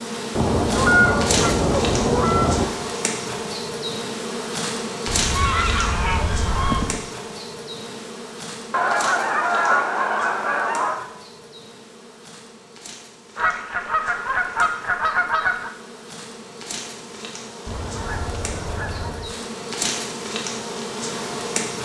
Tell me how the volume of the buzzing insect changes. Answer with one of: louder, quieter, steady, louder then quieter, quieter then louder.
quieter then louder.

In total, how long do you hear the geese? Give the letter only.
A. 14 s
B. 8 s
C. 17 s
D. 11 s
D.